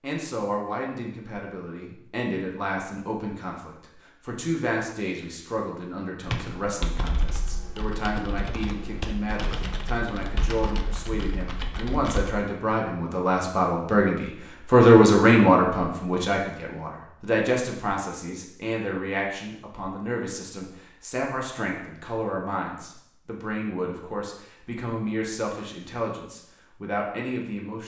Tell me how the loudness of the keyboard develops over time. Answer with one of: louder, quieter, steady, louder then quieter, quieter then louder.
steady.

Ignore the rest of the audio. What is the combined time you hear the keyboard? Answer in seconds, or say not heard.
6 s.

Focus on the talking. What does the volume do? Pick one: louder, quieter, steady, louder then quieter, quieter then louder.
louder then quieter.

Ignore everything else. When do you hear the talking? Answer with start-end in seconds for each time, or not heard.
0.0-27.8.